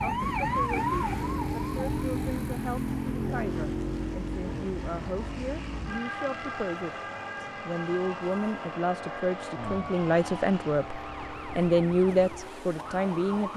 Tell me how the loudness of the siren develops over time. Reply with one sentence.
The loudness of the siren goes down.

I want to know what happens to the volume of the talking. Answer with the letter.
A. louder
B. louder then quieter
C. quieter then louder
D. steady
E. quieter
A.